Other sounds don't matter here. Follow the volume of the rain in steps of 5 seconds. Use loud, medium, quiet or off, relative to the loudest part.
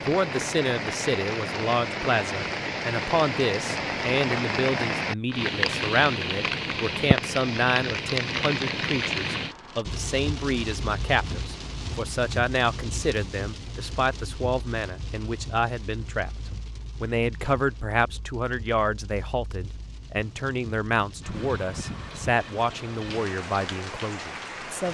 loud, loud, medium, quiet, medium.